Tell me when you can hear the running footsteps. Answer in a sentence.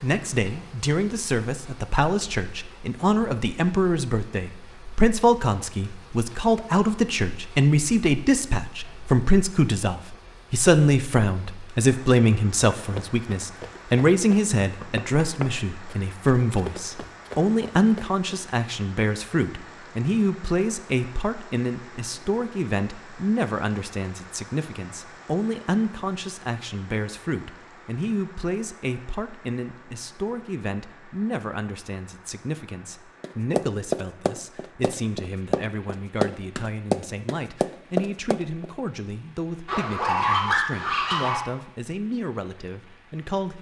The running footsteps can be heard from 12.8 to 18.1 s and from 33.2 to 38.7 s.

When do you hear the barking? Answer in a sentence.
You can hear the barking from 39.6 to 41.4 s.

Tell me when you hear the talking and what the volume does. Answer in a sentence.
You can hear the talking from 0.0 to 43.5 s, getting quieter.